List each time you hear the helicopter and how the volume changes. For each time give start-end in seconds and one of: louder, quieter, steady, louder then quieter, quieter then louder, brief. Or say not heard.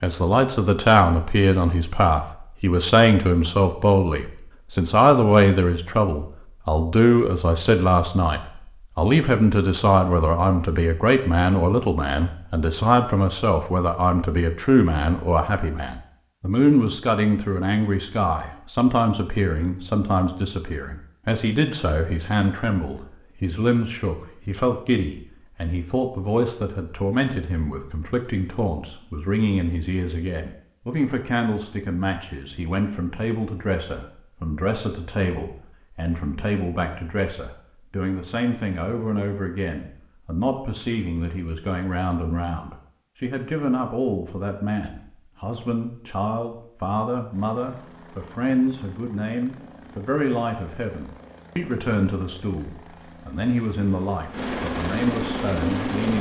47.3-56.1 louder.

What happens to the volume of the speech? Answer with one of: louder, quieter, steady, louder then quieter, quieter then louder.
quieter.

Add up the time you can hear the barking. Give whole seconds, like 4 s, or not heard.
not heard.